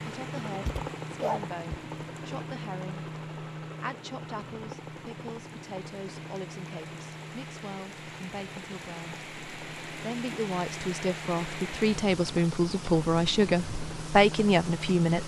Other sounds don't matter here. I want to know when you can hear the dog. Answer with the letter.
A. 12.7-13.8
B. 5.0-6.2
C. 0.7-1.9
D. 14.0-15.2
C.